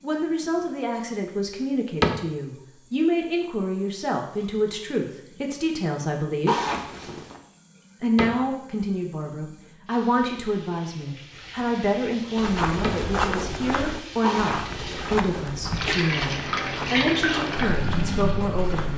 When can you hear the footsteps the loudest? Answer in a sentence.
The volume of the footsteps peaks at 13 seconds.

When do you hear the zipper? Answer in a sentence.
You can hear the zipper from 6.5 to 7.4 s and from 14.2 to 15.7 s.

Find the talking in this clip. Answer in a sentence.
The talking can be heard from 0.0 to 6.5 s and from 8.0 to 18.9 s.